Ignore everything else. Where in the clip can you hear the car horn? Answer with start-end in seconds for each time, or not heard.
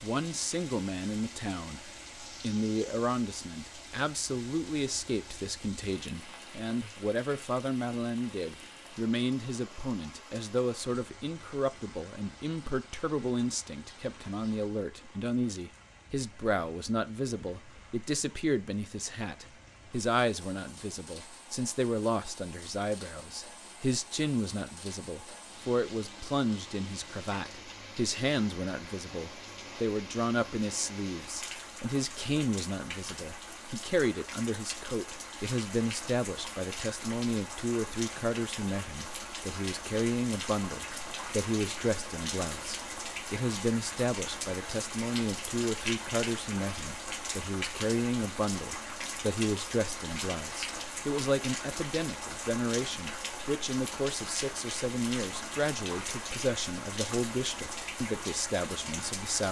not heard.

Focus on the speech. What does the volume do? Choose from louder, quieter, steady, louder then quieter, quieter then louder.
steady.